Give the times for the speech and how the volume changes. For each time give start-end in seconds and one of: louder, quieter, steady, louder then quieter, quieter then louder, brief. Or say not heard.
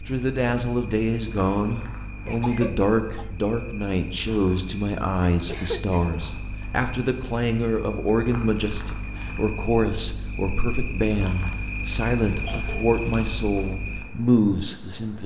0.0-15.2 steady.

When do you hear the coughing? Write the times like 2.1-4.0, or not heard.
1.8-3.3, 5.5-6.2, 12.3-12.9.